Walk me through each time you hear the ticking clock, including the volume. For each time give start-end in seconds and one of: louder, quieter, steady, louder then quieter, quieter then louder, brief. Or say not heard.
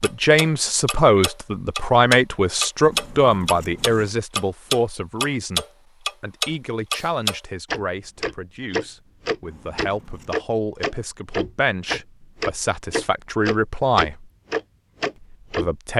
0.0-15.7 steady.